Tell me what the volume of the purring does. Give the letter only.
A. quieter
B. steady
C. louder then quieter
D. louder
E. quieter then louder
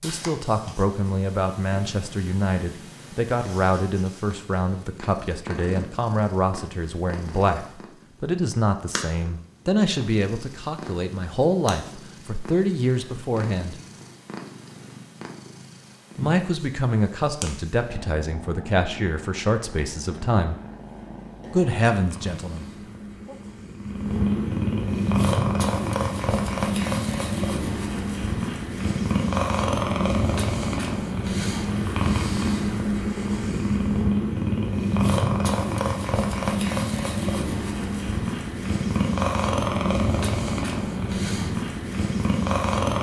D.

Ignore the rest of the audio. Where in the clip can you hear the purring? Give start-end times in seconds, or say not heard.
0.0-42.9.